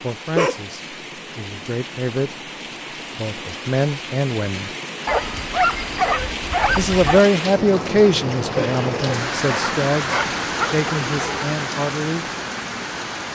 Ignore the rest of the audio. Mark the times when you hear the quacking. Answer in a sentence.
You can't hear the quacking here.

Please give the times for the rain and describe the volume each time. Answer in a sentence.
You can hear the rain from 0.0 to 13.3 s, getting louder.